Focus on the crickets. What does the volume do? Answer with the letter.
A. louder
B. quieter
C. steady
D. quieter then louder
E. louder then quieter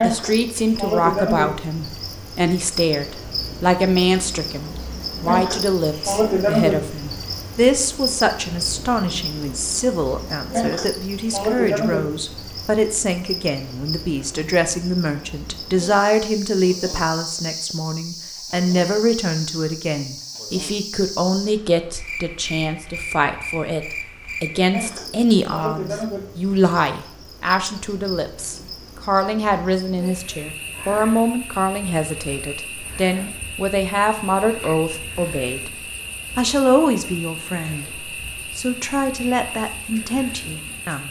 B.